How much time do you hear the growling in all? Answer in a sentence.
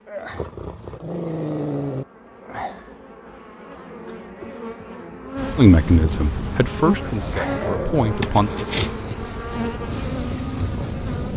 You can hear the growling for 3 seconds altogether.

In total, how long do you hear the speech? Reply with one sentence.
You can hear the speech for 3 seconds altogether.